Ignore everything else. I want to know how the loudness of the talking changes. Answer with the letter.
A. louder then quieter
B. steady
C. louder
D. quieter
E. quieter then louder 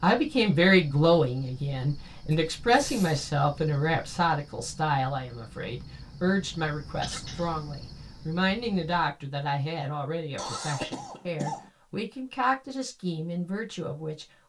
D.